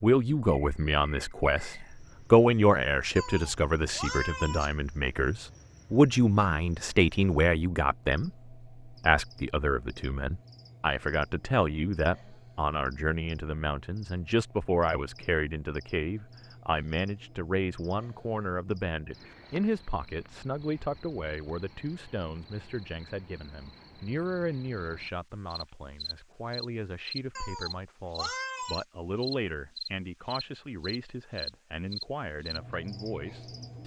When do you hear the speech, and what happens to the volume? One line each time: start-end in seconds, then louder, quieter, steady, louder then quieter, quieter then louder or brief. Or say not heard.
0.0-33.8 quieter.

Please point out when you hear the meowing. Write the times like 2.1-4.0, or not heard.
3.1-4.8, 27.4-28.9.